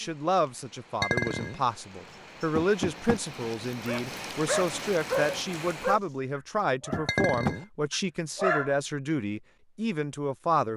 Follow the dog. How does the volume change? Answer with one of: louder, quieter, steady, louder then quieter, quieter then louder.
quieter.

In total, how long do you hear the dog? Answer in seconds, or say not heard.
5 s.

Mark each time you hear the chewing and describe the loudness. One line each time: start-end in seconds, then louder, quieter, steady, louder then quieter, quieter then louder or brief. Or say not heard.
not heard.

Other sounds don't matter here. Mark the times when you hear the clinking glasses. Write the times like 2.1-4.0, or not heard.
1.0-1.6, 7.0-7.7.